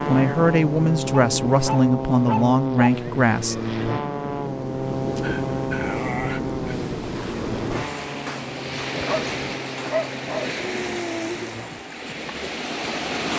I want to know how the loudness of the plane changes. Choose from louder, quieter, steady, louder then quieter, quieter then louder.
quieter.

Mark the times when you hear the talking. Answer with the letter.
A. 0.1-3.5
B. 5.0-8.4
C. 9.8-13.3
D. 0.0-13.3
A.